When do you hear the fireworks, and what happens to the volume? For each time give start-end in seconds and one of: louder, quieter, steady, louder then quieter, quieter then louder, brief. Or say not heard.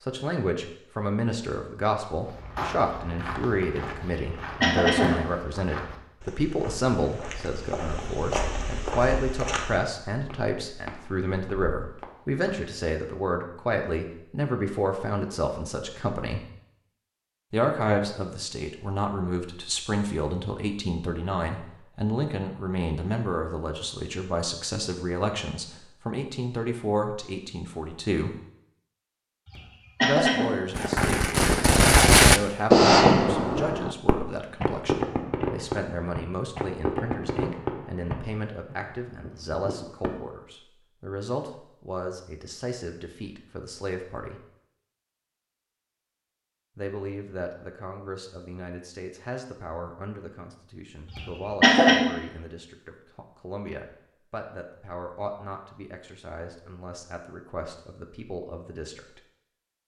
30.8-40.1 quieter.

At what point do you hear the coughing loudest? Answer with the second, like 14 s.
52 s.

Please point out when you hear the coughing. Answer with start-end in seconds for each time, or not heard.
4.2-5.2, 29.5-30.4, 51.1-52.0.